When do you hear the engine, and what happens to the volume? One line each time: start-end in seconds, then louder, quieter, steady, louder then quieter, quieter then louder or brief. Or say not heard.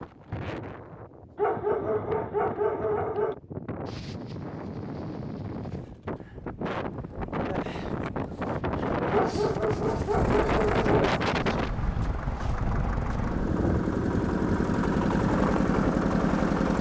10.0-16.7 louder.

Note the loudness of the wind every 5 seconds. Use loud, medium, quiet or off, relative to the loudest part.
medium, loud, loud, medium.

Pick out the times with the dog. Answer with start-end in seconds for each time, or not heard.
1.4-3.4, 9.1-10.9.